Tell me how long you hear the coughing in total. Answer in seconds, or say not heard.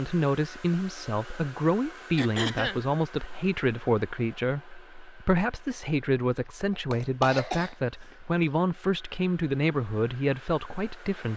2 s.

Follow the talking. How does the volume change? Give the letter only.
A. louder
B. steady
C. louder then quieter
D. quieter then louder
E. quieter
B.